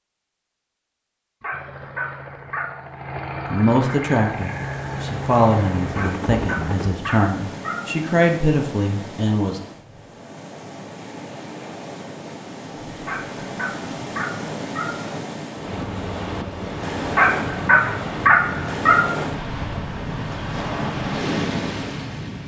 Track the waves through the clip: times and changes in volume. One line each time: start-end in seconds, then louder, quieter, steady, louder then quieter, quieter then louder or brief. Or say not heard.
4.2-22.4 louder.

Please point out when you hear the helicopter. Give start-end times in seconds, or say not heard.
1.5-6.9, 15.7-22.4.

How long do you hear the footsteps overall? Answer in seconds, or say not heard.
not heard.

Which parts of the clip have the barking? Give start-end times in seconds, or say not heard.
1.4-2.8, 6.0-7.8, 13.1-14.8, 17.1-18.9.